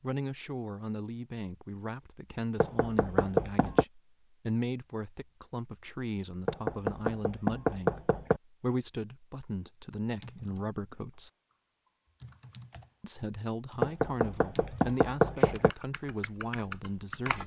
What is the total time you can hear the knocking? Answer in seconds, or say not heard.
5 s.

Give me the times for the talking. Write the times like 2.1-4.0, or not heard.
0.0-11.3, 13.0-17.4.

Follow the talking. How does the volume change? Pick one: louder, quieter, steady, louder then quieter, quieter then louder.
steady.